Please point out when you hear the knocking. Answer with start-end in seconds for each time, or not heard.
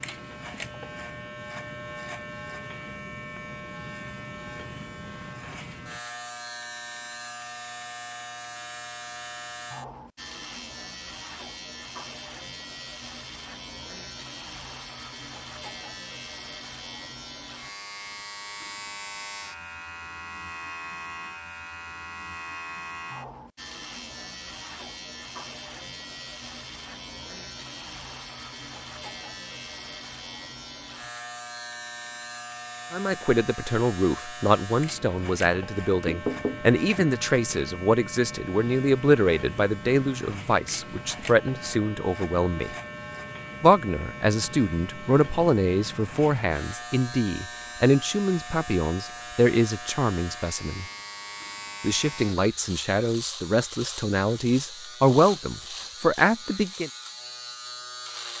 36.0-37.0.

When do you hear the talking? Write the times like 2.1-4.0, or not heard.
32.9-42.8, 43.6-50.9, 51.8-56.9.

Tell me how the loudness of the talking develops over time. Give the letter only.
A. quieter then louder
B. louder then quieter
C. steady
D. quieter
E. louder
C.